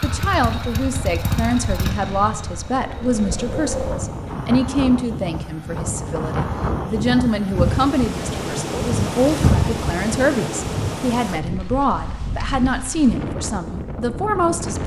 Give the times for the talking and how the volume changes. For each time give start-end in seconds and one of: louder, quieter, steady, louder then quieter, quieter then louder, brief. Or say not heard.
0.0-14.8 steady.